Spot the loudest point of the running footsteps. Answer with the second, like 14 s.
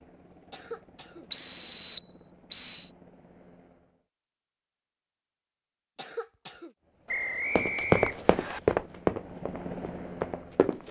8 s.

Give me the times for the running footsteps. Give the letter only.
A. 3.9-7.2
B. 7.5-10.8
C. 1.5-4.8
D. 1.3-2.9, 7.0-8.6
B.